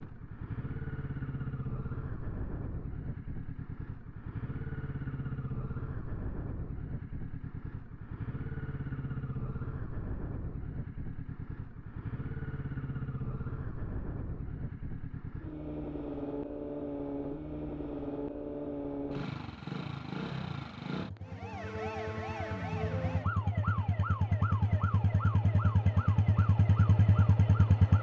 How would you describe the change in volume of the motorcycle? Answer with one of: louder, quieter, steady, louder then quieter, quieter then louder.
louder.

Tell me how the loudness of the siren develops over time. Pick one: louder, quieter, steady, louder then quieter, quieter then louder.
quieter.